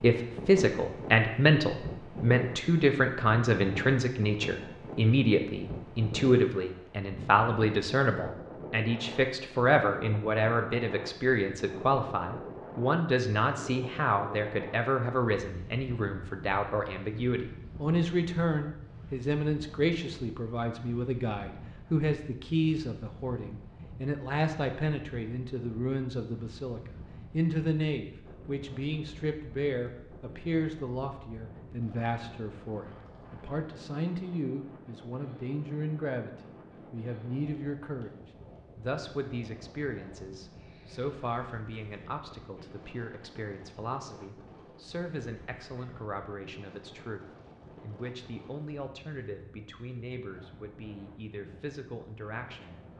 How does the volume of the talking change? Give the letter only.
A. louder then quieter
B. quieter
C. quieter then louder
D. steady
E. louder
B.